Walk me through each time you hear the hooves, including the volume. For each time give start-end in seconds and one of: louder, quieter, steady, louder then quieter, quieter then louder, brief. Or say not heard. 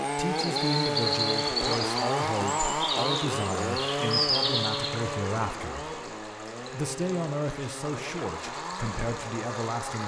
not heard.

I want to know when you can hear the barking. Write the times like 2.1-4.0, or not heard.
not heard.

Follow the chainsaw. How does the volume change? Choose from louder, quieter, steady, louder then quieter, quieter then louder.
quieter.